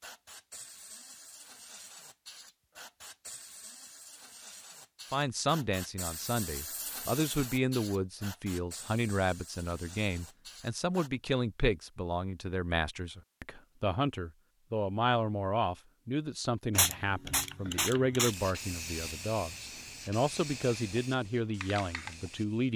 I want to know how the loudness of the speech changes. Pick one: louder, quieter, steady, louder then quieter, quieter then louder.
steady.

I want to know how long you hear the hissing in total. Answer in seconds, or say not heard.
17 s.